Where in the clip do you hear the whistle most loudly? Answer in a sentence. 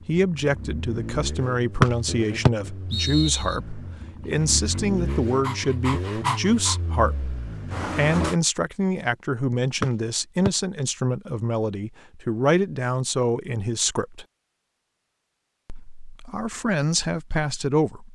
The loudest moment of the whistle is at 2 seconds.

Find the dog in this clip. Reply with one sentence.
You can hear the dog from 4.2 to 6.8 s.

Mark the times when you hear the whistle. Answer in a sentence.
You can hear the whistle from 1.8 to 3.5 s and from 9.8 to 10.5 s.